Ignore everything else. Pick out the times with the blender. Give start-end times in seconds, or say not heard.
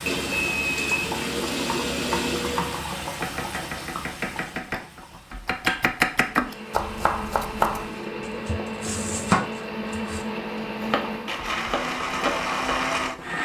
0.0-2.9, 6.2-13.4.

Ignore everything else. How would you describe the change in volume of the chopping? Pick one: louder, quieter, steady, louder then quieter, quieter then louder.
louder then quieter.